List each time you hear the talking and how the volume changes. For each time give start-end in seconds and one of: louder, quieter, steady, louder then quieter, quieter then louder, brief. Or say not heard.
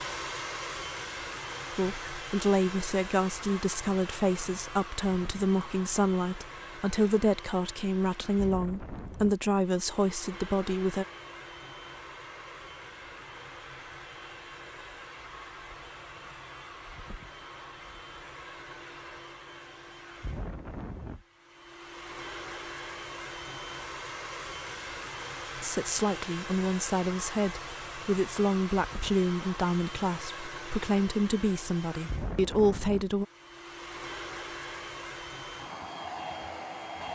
1.8-11.1 steady
25.6-33.2 steady.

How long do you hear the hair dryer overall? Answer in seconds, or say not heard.
37 s.